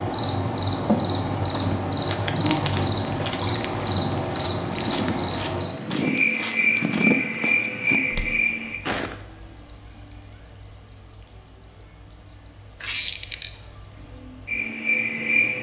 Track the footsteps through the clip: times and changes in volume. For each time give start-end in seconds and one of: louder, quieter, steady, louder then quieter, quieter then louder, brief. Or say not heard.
1.4-9.2 louder then quieter.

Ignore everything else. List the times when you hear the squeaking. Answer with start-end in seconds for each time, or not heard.
12.8-13.5.